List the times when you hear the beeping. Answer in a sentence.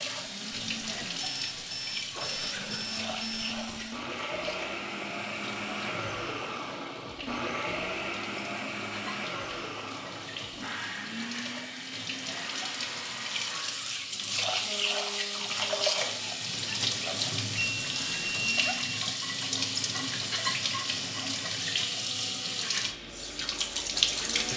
You can hear the beeping from 1.0 to 3.6 s and from 17.6 to 18.8 s.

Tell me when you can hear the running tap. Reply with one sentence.
You can hear the running tap from 0.0 to 24.5 s.